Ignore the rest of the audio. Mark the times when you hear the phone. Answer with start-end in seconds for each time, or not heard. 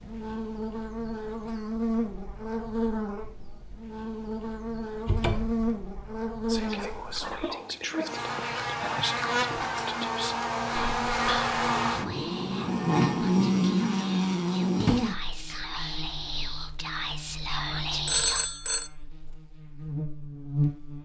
18.1-18.9.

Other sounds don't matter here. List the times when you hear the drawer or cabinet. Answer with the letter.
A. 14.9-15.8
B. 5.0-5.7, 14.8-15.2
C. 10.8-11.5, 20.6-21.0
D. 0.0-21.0
B.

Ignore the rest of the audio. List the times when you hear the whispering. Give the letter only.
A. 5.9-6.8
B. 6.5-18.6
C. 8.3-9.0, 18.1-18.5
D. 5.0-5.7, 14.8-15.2
B.